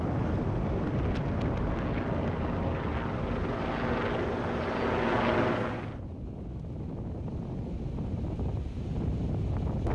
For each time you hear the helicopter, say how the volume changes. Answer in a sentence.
The helicopter can be heard from 0.0 to 6.0 s, getting louder.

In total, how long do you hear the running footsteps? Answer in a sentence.
The running footsteps can't be heard in this clip.